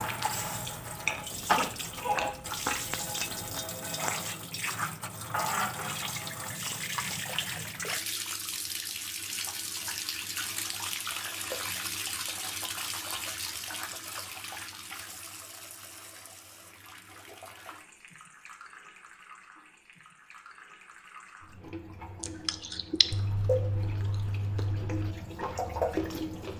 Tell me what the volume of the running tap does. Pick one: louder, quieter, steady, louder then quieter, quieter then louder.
quieter then louder.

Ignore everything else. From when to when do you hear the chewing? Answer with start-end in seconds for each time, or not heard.
0.0-3.6, 22.2-26.5.